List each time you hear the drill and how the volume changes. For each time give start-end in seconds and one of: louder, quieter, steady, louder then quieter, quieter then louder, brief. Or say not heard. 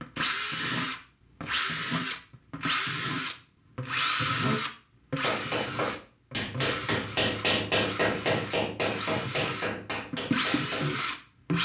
0.0-11.6 quieter then louder.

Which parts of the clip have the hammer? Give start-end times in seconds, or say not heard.
5.2-11.1.